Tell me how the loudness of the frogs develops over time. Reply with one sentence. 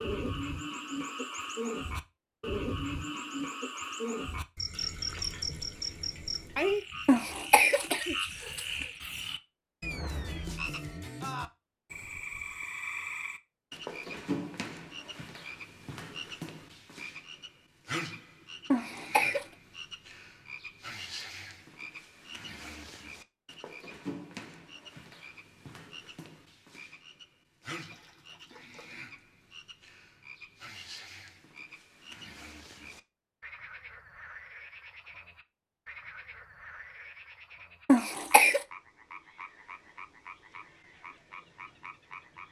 The volume of the frogs goes down.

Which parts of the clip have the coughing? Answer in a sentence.
You can hear the coughing from 7.0 to 8.8 s, from 18.7 to 19.4 s and from 37.9 to 38.6 s.